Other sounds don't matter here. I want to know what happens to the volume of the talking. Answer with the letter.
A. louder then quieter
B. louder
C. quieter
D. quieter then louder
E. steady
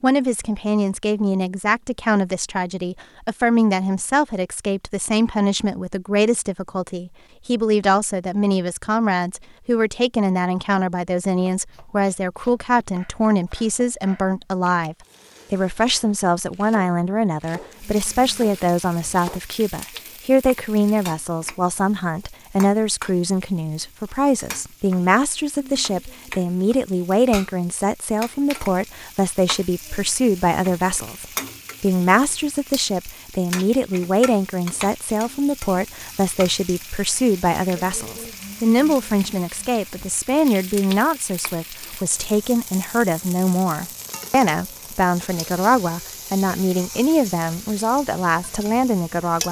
E.